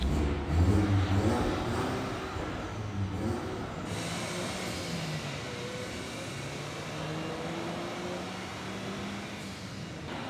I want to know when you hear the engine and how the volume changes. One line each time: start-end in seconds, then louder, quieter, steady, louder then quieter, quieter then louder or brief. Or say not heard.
0.0-10.2 quieter.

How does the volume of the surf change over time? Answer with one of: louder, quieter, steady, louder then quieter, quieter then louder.
steady.